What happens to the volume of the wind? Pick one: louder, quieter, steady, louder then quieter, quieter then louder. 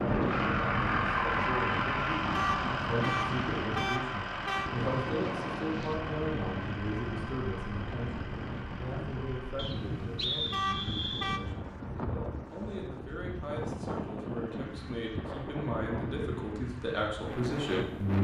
steady.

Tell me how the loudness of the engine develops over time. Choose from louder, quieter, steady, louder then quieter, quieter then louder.
quieter.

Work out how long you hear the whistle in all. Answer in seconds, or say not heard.
2 s.